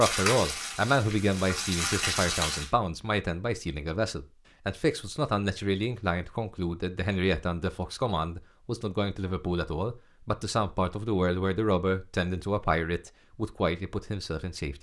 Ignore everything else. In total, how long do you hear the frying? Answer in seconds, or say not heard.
3 s.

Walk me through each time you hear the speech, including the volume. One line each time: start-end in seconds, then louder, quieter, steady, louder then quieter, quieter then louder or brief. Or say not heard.
0.0-14.7 steady.